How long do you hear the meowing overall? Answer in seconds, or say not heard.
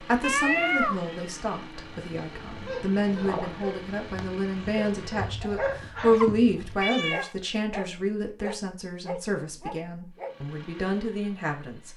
2 s.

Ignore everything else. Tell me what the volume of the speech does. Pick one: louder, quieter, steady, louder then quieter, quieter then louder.
louder then quieter.